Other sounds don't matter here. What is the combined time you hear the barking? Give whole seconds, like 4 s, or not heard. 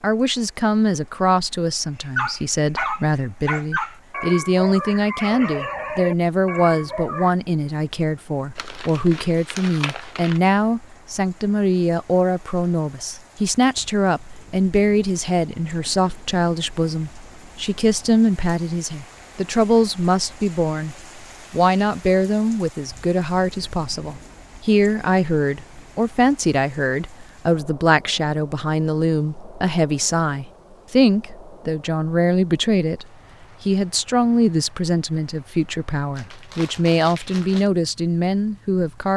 5 s.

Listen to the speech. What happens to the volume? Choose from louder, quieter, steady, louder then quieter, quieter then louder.
steady.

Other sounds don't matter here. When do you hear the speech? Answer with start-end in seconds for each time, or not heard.
0.0-39.1.